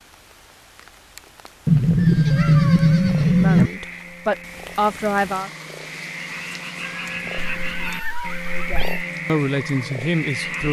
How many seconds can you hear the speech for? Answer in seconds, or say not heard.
4 s.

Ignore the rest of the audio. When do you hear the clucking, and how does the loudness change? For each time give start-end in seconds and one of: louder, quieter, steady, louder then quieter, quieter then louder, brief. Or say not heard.
not heard.